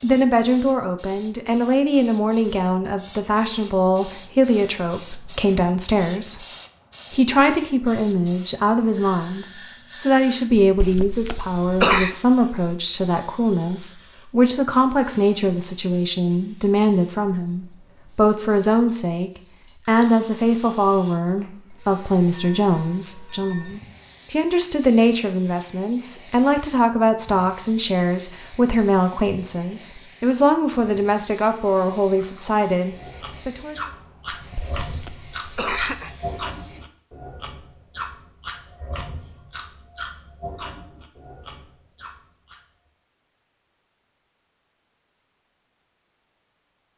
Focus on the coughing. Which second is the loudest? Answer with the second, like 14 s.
12 s.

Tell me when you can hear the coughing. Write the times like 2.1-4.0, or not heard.
10.6-12.2, 34.4-36.1.